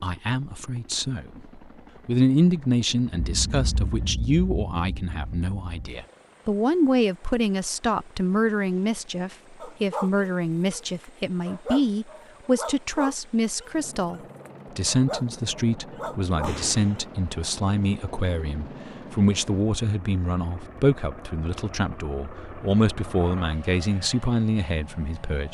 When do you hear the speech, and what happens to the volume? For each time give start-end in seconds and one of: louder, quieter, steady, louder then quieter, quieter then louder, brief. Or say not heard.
0.0-25.4 steady.